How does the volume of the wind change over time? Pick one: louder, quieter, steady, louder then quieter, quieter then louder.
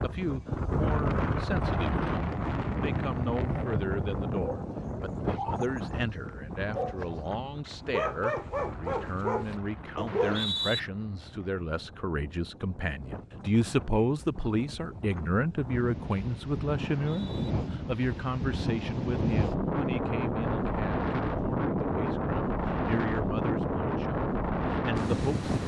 quieter then louder.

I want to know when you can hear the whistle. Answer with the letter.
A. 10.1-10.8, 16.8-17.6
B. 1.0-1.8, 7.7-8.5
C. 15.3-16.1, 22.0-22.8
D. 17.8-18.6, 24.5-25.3
A.